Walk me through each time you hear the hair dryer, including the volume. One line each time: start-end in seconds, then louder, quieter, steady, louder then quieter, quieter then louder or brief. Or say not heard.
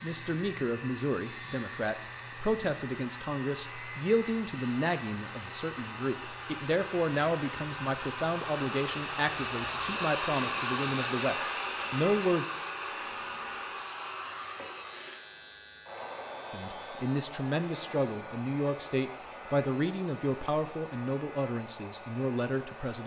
0.0-23.0 louder then quieter.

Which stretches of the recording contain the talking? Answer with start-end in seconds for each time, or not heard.
0.0-12.4, 16.5-23.0.